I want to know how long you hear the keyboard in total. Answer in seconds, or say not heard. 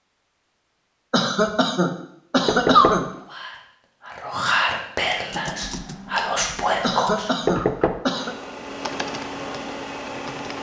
5 s.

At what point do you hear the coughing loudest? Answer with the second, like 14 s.
3 s.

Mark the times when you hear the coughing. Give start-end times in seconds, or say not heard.
1.1-3.0, 6.8-8.3.